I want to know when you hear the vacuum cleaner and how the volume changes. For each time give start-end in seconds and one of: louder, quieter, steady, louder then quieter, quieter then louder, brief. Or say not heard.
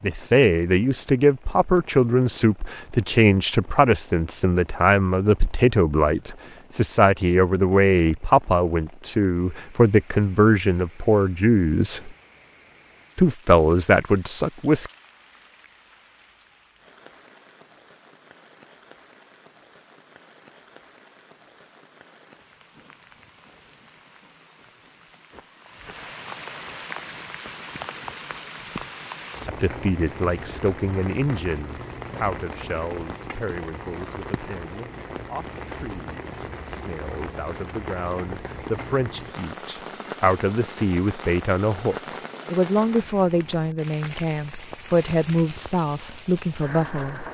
not heard.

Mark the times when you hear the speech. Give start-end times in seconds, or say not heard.
0.0-12.1, 13.2-14.9, 29.4-47.2.